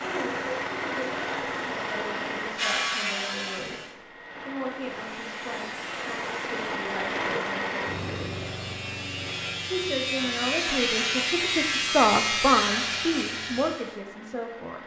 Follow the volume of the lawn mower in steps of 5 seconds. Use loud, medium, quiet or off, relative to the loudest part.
loud, loud, quiet.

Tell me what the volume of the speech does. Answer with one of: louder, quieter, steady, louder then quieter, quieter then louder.
louder.